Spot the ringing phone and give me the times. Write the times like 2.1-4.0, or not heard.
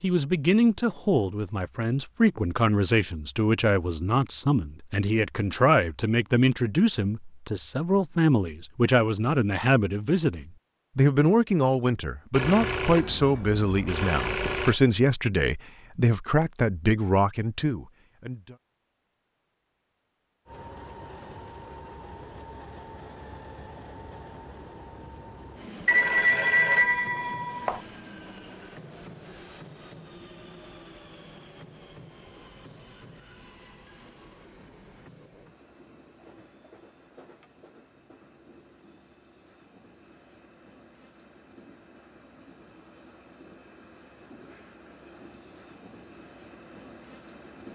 12.3-14.8, 25.9-27.9.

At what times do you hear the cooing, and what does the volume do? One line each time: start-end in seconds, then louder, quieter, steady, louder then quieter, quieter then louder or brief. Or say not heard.
not heard.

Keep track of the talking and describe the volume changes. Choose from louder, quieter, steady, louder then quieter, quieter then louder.
steady.